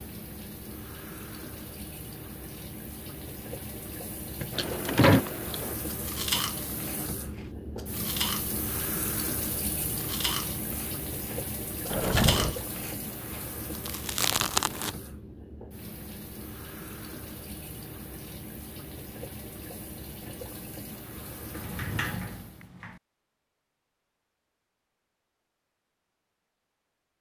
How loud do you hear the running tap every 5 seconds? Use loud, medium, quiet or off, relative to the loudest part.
medium, loud, loud, medium, medium, off.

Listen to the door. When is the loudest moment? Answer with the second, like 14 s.
5 s.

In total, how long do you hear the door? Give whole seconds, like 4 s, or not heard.
3 s.